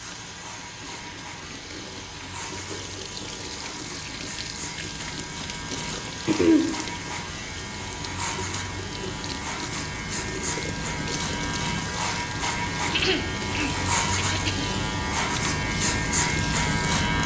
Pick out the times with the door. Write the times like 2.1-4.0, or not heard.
not heard.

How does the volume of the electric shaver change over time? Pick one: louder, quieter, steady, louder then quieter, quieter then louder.
louder.